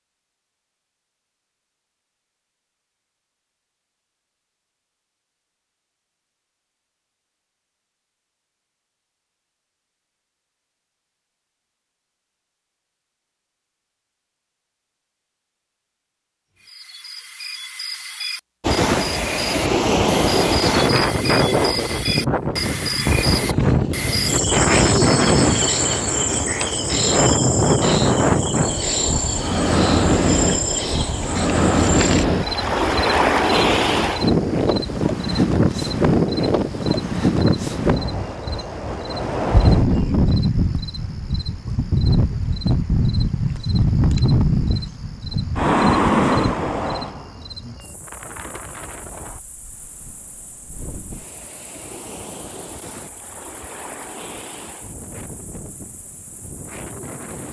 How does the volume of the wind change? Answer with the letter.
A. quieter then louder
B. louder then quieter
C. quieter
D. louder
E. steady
C.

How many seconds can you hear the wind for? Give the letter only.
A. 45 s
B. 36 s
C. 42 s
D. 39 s
D.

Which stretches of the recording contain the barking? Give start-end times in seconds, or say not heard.
not heard.